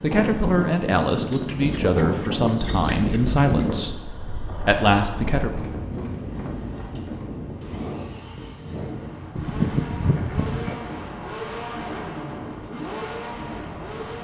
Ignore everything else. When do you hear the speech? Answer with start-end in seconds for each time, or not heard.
0.0-5.7.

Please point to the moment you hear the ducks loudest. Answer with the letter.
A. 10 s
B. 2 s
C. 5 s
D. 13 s
A.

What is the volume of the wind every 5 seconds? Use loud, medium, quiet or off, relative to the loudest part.
loud, medium, quiet.